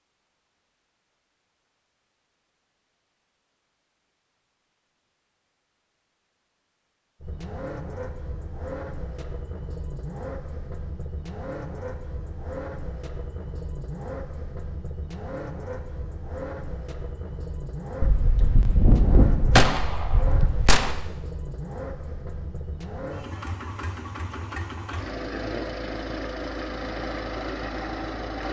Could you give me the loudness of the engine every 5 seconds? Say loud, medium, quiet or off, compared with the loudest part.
off, medium, medium, medium, medium, loud.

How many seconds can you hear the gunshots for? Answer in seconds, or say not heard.
3 s.